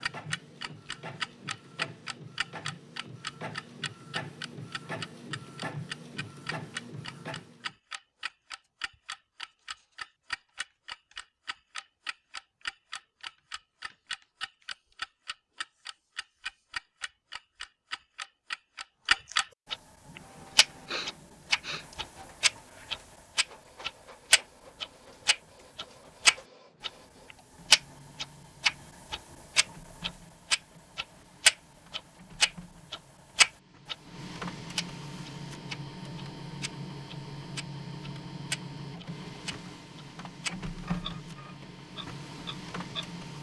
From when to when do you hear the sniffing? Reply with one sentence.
The sniffing can be heard from 20.1 to 21.9 s.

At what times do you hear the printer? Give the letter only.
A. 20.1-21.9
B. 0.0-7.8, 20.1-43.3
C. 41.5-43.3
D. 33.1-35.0
B.